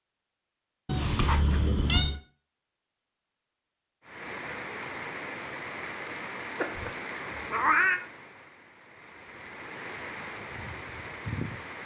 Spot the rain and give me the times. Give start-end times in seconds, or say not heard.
4.0-11.8.